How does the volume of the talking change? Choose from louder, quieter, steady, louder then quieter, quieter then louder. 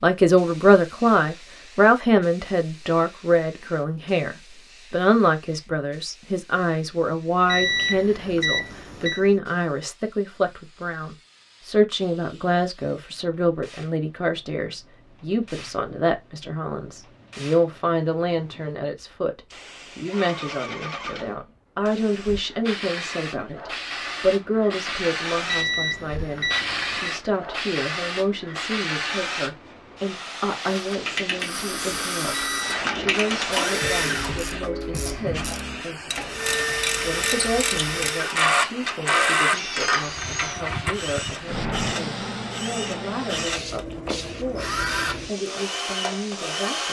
quieter.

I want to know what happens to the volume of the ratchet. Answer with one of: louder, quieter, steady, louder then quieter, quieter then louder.
louder.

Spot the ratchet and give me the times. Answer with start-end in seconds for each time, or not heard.
31.1-41.0.